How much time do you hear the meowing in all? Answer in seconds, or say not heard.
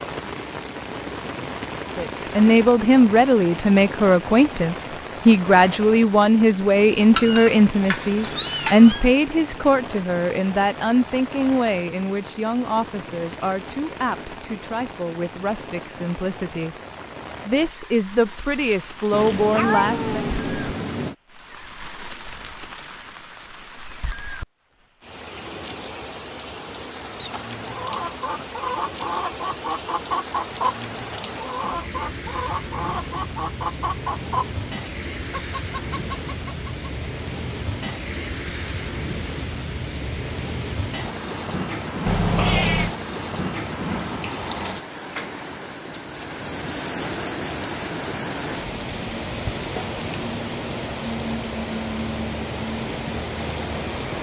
5 s.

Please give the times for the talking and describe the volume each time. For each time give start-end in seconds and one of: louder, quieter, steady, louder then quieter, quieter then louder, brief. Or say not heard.
1.9-16.8 quieter
17.4-20.2 brief.